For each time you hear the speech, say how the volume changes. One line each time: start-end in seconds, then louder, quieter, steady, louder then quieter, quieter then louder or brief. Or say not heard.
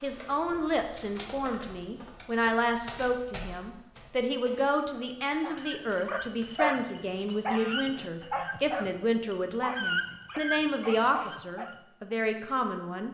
0.0-13.0 steady.